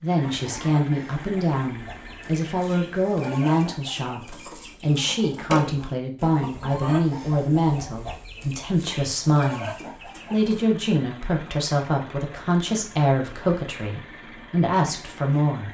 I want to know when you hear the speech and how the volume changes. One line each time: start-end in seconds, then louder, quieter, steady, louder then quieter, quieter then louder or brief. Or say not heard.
0.0-15.6 steady.